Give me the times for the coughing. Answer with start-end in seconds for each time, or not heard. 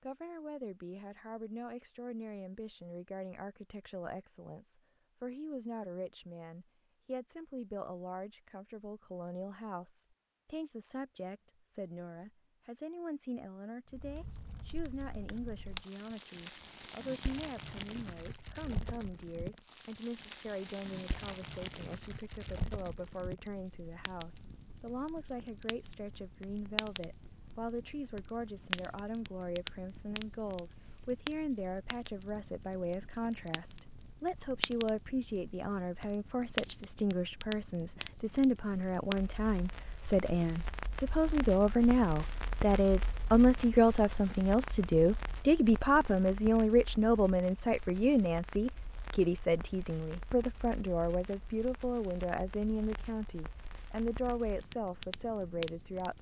not heard.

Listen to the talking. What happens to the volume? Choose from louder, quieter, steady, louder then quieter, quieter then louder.
louder.